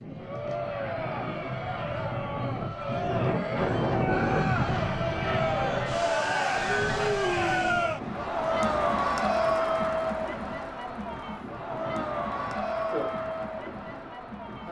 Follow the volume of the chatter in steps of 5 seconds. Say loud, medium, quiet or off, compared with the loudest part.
medium, loud, medium.